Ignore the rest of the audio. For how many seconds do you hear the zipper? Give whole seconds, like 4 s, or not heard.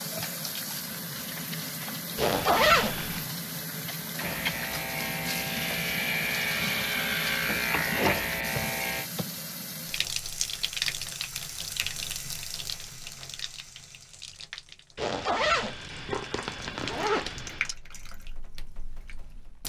4 s.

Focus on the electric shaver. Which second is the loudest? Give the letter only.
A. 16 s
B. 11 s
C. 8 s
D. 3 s
C.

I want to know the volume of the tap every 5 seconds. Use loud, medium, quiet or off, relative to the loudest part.
loud, loud, loud, medium.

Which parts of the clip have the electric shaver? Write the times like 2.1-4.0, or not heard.
4.2-9.1.